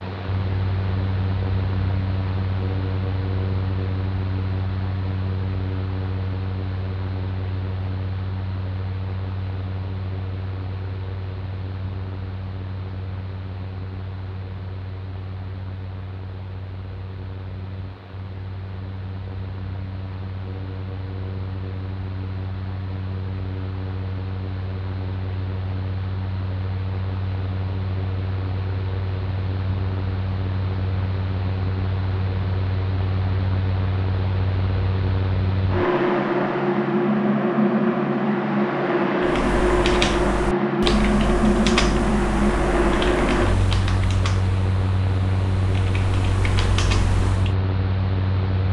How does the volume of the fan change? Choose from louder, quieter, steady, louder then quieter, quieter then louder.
quieter then louder.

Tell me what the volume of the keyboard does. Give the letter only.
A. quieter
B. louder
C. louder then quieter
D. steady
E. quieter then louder
E.